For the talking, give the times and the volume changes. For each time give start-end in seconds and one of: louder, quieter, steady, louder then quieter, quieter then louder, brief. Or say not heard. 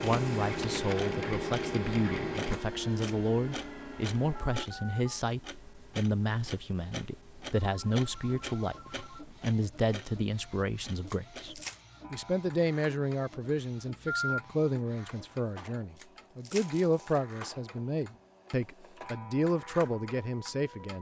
0.0-20.9 steady.